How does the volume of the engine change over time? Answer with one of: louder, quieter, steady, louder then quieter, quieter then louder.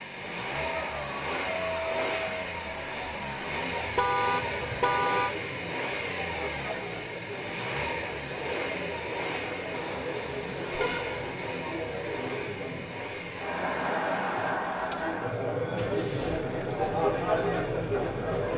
quieter.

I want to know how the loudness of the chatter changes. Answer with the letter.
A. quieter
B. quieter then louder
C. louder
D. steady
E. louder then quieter
C.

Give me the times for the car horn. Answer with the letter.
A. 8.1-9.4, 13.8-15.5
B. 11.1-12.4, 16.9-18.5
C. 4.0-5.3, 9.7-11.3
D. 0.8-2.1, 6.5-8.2
C.